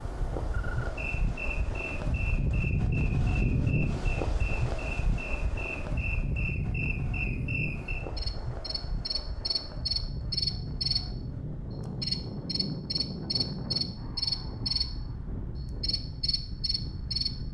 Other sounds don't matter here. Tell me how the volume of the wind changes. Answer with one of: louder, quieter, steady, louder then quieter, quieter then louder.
quieter.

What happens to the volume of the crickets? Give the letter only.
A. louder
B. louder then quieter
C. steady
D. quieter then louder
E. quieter
A.